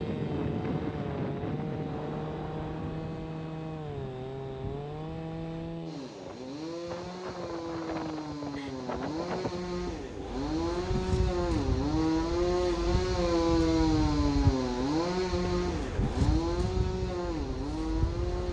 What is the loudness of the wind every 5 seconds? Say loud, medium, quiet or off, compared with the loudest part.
loud, medium, loud, loud.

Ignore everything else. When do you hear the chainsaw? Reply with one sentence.
You can hear the chainsaw from 0.0 to 18.4 s.